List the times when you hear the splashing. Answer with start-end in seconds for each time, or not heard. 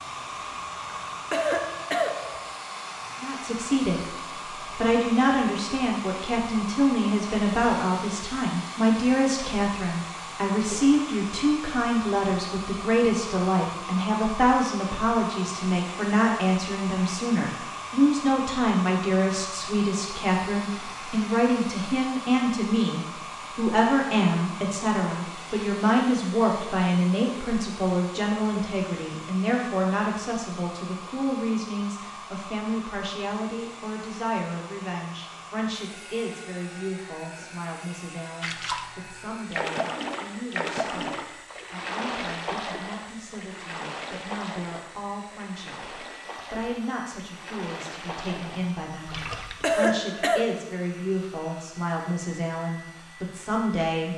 38.4-49.8.